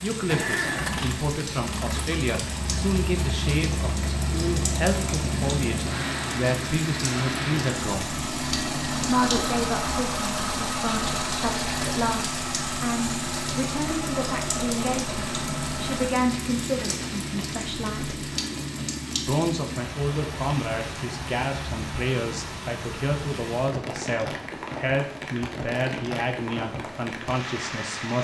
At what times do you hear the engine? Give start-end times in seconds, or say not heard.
0.2-16.1.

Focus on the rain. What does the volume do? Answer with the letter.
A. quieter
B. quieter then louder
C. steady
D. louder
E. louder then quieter
C.